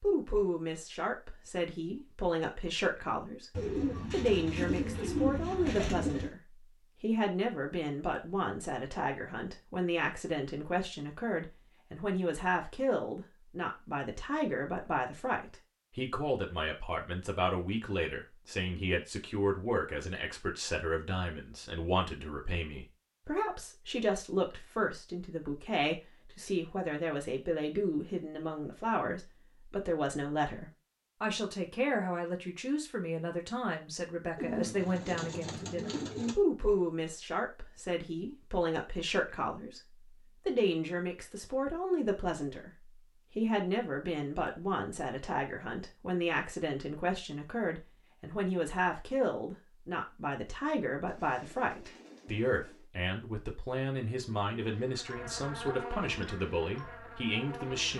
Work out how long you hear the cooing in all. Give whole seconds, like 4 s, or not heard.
7 s.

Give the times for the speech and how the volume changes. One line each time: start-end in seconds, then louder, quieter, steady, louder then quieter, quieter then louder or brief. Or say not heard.
0.0-57.9 steady.